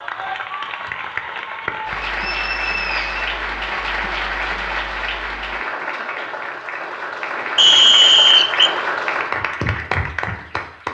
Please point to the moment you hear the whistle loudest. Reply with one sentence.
The volume of the whistle peaks at 8 seconds.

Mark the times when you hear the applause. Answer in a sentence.
The applause can be heard from 0.0 to 10.9 s.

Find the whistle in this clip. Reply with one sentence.
You can hear the whistle from 2.1 to 3.3 s and from 7.5 to 8.7 s.